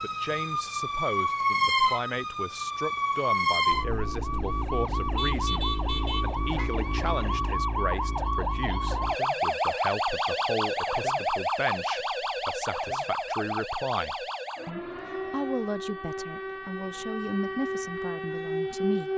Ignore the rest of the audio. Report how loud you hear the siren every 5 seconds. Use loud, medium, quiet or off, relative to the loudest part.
loud, loud, loud, medium.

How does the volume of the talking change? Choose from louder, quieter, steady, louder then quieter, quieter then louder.
steady.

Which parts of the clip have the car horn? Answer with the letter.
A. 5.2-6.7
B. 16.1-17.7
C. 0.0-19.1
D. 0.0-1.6
A.